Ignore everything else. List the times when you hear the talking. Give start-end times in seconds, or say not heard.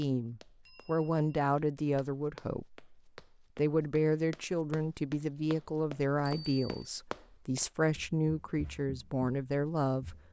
0.0-2.9, 3.5-10.2.